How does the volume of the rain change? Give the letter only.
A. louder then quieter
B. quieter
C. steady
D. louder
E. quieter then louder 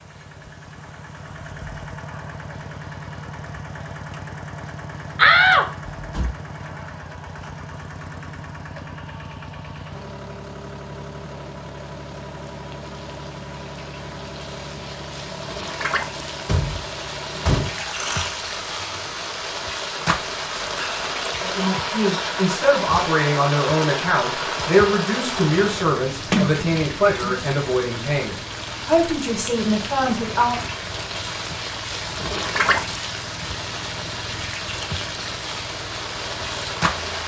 D.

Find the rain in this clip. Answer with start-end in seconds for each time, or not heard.
0.0-37.2.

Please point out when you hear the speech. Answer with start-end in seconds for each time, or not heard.
21.4-30.6.